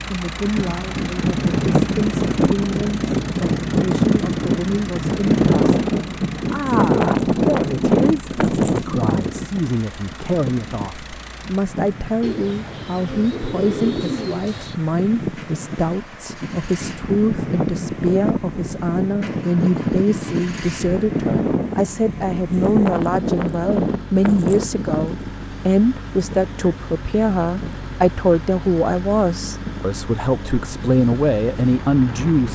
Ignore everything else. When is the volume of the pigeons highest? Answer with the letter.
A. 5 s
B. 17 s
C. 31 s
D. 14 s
D.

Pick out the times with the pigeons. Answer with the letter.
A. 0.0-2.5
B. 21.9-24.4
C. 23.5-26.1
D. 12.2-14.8
D.